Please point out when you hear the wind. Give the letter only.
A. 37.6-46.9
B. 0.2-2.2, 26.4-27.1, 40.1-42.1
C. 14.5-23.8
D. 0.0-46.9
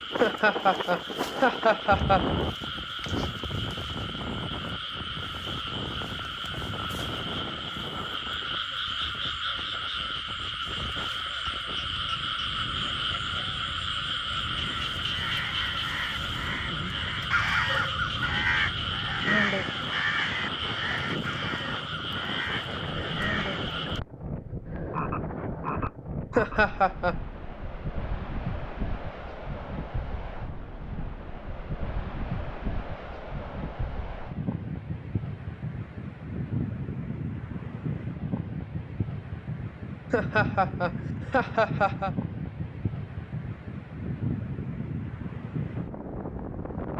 D.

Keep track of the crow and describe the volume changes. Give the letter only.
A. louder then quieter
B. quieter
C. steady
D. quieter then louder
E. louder
A.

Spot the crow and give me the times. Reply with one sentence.
You can hear the crow from 14.5 to 23.8 s.